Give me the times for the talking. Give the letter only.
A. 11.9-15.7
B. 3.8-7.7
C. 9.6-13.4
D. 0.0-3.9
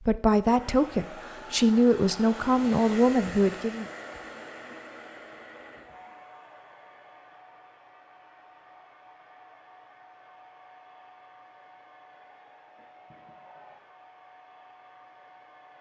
D.